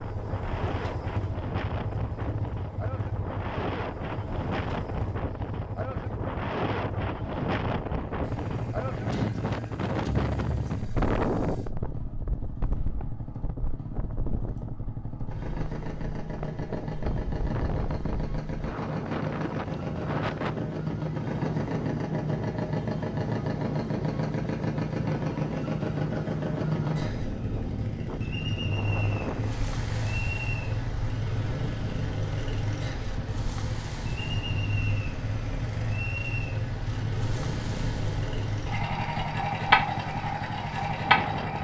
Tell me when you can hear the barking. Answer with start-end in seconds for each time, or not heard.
not heard.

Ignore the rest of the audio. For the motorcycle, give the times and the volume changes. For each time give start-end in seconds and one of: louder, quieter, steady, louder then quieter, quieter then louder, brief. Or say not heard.
0.0-41.6 louder.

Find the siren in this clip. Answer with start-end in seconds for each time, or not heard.
not heard.